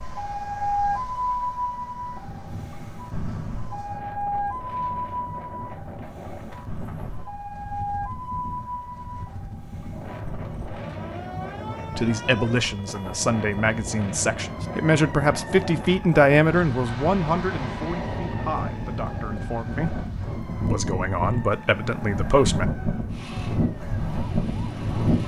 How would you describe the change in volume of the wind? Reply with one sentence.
The loudness of the wind goes up.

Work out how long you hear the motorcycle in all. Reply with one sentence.
The motorcycle can be heard for 2 seconds in total.